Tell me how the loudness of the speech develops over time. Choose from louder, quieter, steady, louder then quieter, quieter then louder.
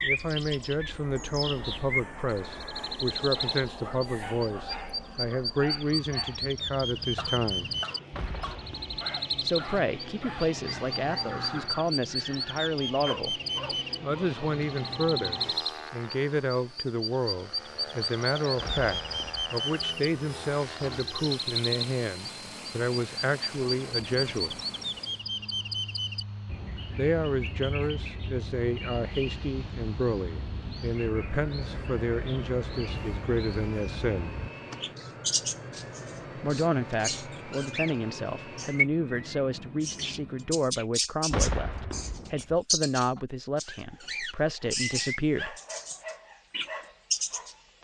steady.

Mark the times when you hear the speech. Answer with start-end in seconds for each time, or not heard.
0.0-7.7, 9.4-13.4, 14.0-24.6, 26.9-34.4, 36.4-45.5.